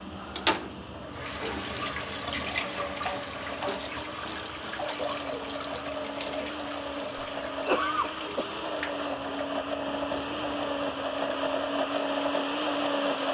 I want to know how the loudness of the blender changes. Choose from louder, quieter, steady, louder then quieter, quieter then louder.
louder.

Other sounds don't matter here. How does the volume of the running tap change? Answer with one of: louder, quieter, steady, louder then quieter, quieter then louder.
quieter.